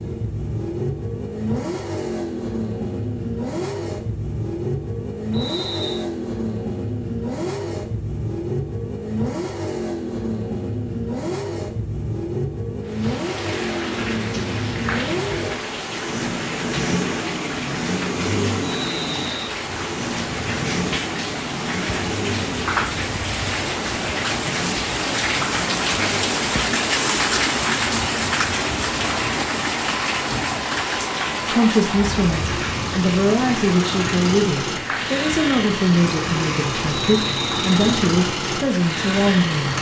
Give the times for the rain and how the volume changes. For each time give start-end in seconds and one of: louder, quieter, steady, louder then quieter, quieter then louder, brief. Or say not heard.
12.8-39.7 louder then quieter.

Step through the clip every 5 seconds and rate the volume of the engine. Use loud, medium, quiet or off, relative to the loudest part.
loud, loud, loud, loud, loud, medium, loud, loud.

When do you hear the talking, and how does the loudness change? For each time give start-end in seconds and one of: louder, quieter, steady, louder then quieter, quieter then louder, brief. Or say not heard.
31.5-39.7 steady.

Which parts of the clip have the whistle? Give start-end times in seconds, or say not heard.
5.3-6.0, 18.6-19.6, 37.0-37.9.